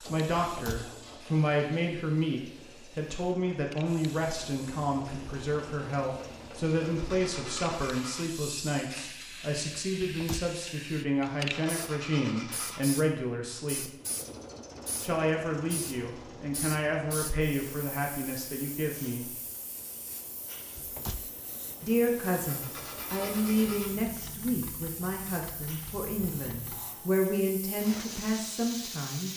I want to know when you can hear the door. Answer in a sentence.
You can hear the door from 0.3 to 0.9 s, from 10.0 to 10.5 s and from 20.8 to 21.3 s.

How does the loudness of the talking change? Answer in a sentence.
The loudness of the talking stays about the same.